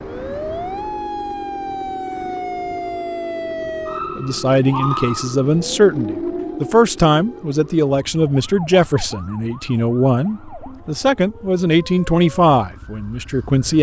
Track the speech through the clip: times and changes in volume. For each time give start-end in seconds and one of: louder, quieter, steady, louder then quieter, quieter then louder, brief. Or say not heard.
4.2-13.7 steady.